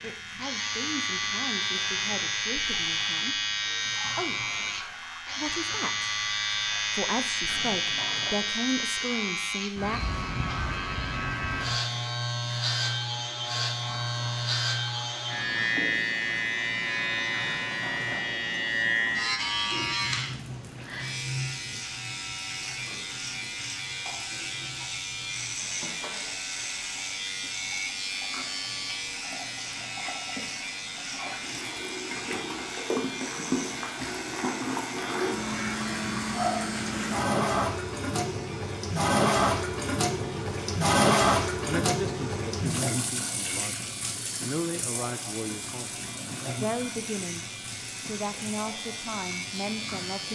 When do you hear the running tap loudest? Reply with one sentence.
The volume of the running tap peaks at 41 seconds.